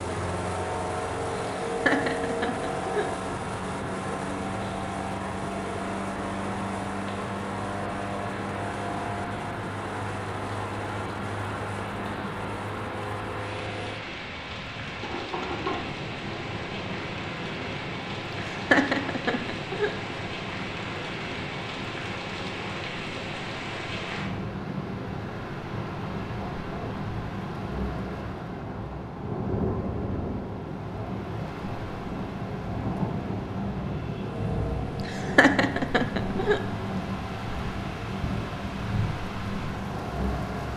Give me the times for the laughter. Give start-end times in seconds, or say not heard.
1.6-3.0, 18.5-19.9, 35.0-36.6.